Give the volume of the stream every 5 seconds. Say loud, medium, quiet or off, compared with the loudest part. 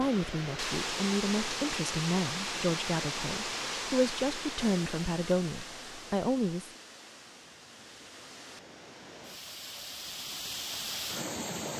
loud, medium, loud.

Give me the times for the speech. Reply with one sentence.
The speech can be heard from 0.0 to 6.7 s.